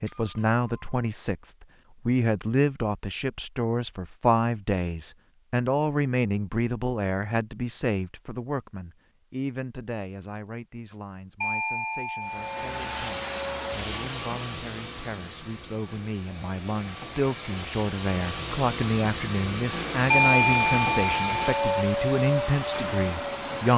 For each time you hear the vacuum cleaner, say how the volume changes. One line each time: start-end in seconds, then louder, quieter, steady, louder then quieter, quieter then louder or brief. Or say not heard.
12.2-23.7 quieter then louder.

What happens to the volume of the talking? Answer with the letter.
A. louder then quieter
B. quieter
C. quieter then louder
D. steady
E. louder
C.